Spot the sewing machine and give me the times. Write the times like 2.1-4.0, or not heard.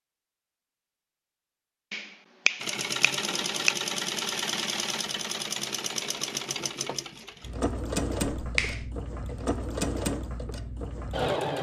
2.6-11.5.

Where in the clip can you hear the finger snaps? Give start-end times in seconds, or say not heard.
1.9-3.8, 8.3-8.8.